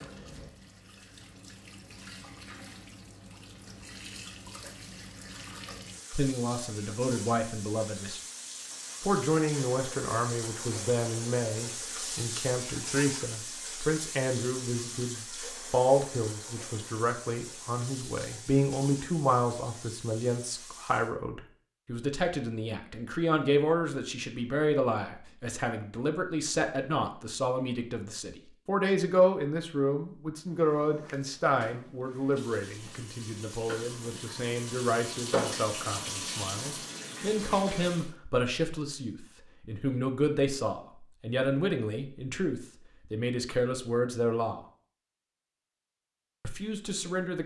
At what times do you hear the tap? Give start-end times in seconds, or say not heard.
0.0-21.1, 30.5-38.1.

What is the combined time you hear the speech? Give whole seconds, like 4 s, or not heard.
39 s.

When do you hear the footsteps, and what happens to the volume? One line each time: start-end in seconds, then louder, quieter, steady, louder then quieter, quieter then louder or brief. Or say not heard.
not heard.